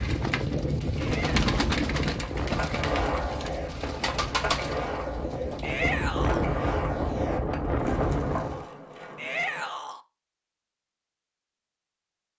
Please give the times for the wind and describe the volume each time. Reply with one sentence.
You can hear the wind from 0.0 to 8.7 s, getting quieter then louder.